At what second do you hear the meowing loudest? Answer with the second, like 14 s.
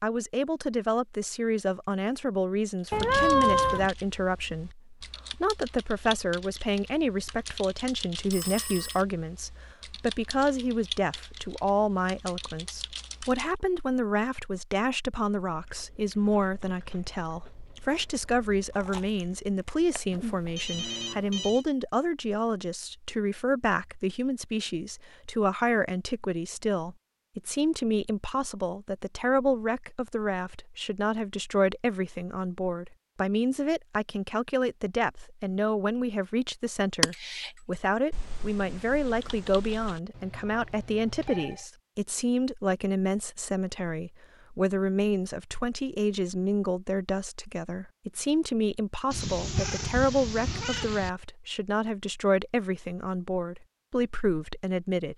3 s.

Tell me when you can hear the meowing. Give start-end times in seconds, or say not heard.
2.9-3.9, 49.1-51.1.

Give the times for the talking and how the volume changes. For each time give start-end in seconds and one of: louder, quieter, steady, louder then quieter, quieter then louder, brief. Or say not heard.
0.0-55.1 steady.